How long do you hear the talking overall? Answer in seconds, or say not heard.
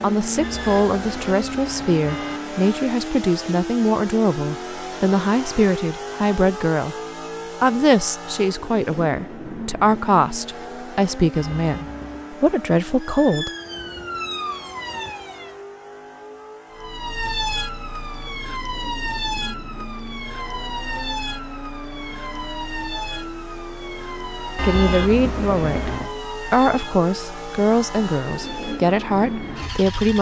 18 s.